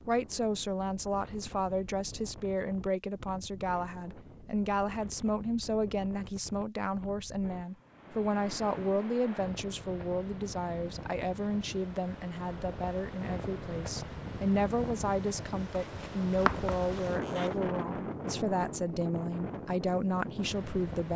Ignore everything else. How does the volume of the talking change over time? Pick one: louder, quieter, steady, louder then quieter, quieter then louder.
steady.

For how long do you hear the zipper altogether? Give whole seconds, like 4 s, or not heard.
2 s.